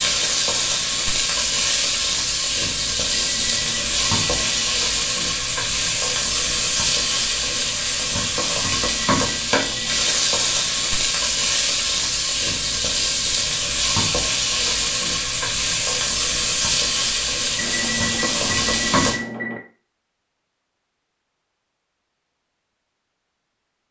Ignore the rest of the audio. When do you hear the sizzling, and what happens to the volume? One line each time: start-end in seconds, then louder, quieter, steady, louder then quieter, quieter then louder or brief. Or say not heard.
0.0-19.2 steady.